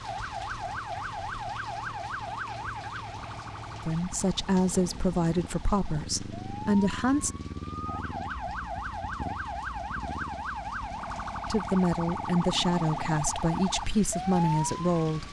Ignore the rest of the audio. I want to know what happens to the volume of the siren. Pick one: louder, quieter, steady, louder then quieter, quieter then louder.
quieter then louder.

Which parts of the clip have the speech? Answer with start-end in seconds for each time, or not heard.
3.9-7.3, 11.4-15.2.